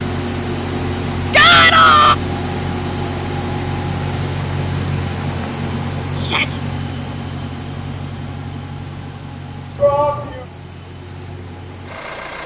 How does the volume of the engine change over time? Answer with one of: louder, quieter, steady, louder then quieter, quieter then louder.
quieter.